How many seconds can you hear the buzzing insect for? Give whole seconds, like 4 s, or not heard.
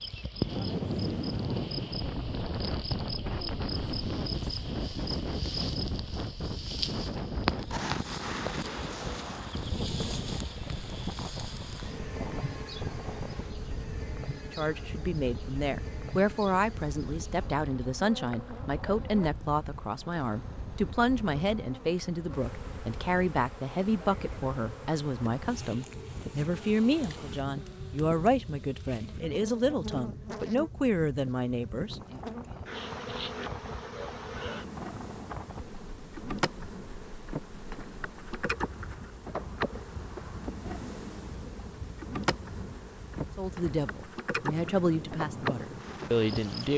47 s.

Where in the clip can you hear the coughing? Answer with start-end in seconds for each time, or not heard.
not heard.